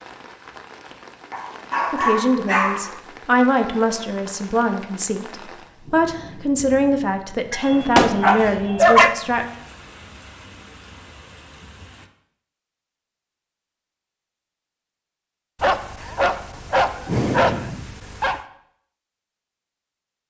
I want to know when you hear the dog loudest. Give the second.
9 s.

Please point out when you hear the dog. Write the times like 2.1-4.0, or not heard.
1.3-2.9, 7.5-9.2, 15.6-18.4.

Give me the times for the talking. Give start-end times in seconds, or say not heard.
1.9-9.4.